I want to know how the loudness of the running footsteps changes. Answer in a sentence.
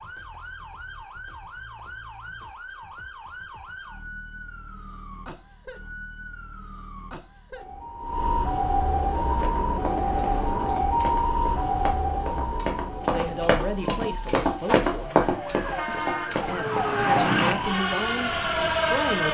The loudness of the running footsteps goes up.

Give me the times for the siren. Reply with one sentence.
You can hear the siren from 0.0 to 19.2 s.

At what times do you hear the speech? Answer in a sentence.
You can hear the speech from 13.1 to 19.2 s.